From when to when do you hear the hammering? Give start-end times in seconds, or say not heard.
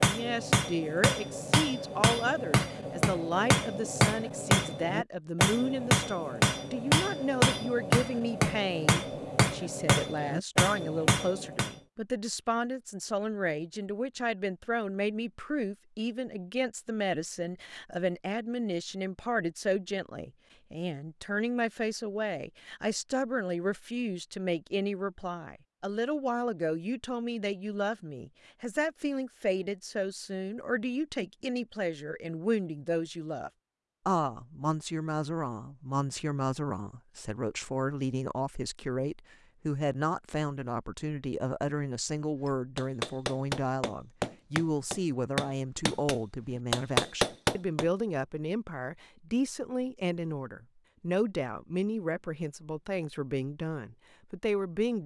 0.0-11.7, 42.5-47.9.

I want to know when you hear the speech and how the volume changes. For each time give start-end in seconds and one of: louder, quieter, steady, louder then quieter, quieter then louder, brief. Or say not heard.
0.0-55.0 steady.